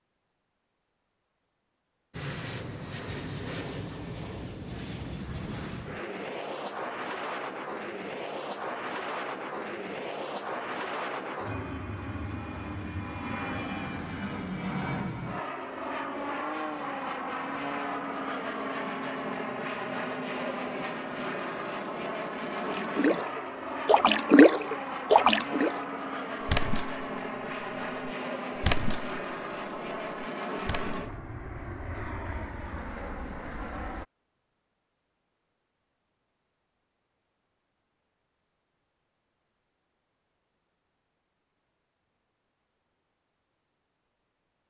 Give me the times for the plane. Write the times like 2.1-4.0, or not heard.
2.1-34.0.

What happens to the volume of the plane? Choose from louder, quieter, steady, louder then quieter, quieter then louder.
steady.